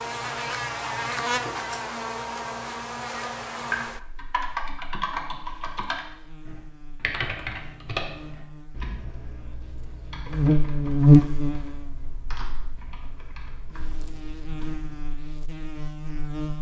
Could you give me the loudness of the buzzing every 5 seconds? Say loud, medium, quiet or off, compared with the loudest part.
medium, quiet, loud, quiet.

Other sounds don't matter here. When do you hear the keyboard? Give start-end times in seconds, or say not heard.
3.5-15.0.